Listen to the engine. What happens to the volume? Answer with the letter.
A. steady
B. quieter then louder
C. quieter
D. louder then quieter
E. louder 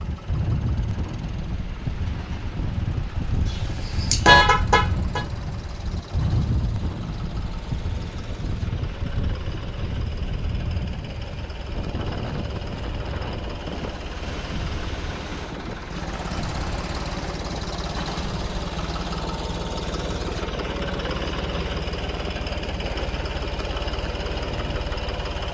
E.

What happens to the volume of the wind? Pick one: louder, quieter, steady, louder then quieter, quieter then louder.
quieter.